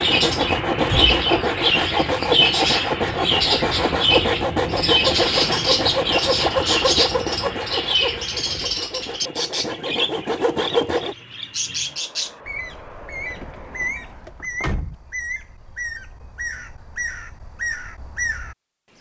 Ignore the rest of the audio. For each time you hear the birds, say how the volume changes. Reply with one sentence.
The birds can be heard from 0.0 to 18.9 s, getting quieter.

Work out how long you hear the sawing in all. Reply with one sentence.
The sawing can be heard for 11 seconds in total.